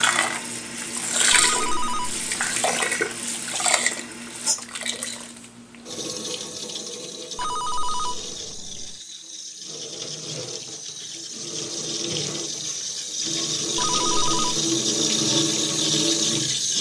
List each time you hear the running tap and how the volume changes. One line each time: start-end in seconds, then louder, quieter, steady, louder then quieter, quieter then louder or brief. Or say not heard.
0.0-16.7 quieter then louder.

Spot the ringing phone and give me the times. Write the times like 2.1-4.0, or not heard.
1.3-2.2, 7.3-8.9, 13.8-14.6.